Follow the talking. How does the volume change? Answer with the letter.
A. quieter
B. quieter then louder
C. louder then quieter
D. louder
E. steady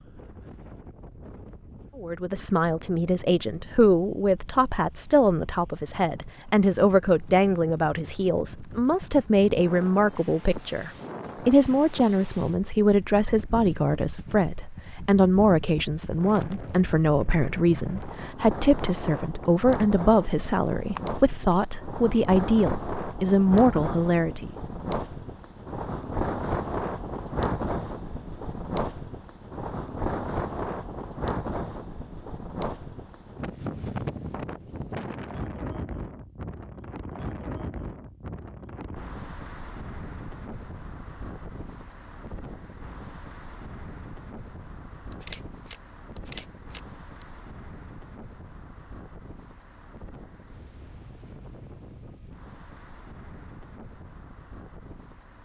E.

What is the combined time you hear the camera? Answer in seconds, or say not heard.
3 s.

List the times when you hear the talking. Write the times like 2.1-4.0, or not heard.
1.9-24.6.